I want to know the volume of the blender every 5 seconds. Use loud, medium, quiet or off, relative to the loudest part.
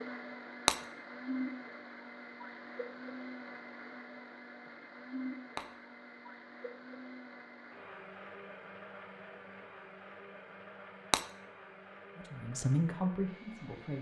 loud, loud, medium.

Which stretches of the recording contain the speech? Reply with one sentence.
You can hear the speech from 12.2 to 13.9 s.